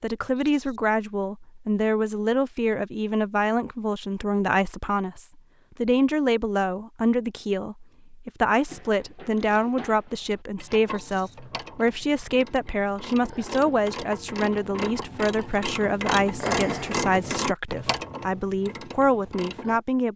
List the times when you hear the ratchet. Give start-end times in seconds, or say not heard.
8.7-19.8.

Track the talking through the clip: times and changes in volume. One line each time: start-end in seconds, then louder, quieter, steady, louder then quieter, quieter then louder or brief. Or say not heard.
0.0-20.1 steady.